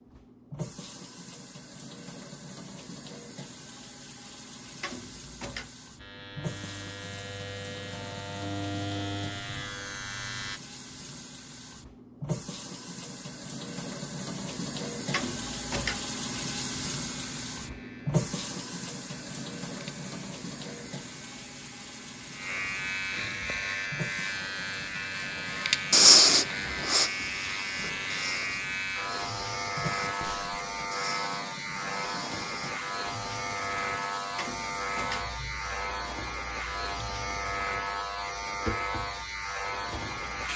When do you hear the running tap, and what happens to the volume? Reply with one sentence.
You can hear the running tap from 0.0 to 40.5 s, getting louder then quieter.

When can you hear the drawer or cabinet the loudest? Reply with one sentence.
The loudest moment of the drawer or cabinet is at 16 seconds.